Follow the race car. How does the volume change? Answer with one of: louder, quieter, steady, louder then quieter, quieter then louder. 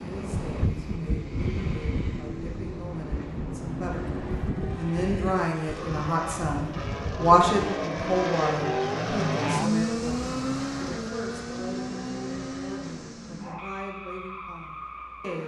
louder then quieter.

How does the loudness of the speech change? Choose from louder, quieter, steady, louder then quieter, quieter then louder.
louder then quieter.